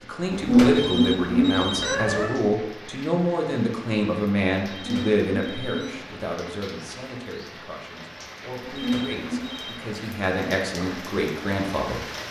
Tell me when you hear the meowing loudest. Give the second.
1 s.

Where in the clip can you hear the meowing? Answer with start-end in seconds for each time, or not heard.
0.3-2.3, 4.7-6.0, 8.7-9.6.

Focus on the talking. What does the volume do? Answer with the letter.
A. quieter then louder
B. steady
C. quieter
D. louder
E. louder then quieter
A.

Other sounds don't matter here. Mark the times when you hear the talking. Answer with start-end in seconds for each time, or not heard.
0.0-12.1.